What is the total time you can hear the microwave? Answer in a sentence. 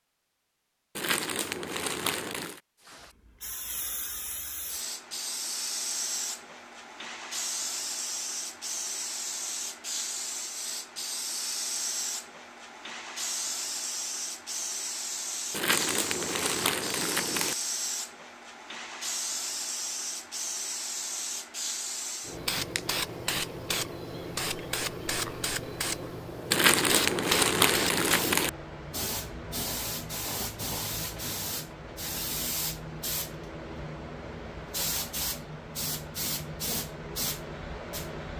You can't hear the microwave here.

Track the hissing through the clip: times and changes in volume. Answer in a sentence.
You can hear the hissing from 2.9 to 38.3 s, at a steady volume.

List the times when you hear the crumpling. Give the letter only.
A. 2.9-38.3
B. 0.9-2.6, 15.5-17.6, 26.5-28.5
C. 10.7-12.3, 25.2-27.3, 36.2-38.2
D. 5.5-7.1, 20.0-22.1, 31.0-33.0
B.